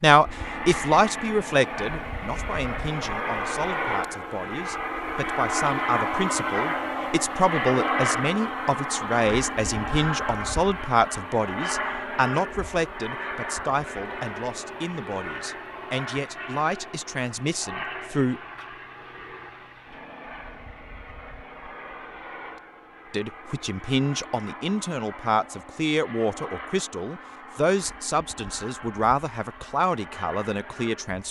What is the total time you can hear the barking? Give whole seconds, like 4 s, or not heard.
not heard.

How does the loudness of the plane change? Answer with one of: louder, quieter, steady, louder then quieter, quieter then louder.
quieter.